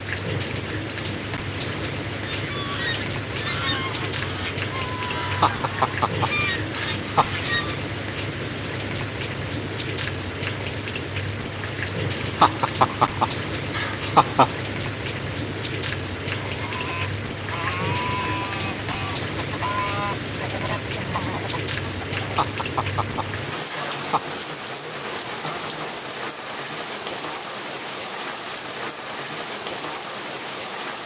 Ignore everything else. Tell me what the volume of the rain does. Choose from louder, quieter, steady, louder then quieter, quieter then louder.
steady.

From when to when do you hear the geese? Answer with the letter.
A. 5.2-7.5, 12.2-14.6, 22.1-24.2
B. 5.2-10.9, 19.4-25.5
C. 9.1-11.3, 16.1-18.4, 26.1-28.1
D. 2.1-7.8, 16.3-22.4
D.